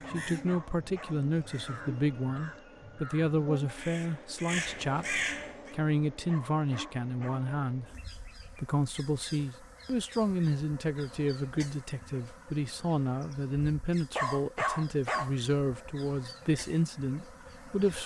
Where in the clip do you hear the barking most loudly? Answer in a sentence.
The volume of the barking peaks at 15 seconds.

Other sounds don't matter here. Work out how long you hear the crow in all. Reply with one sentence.
The crow can be heard for 6 seconds in total.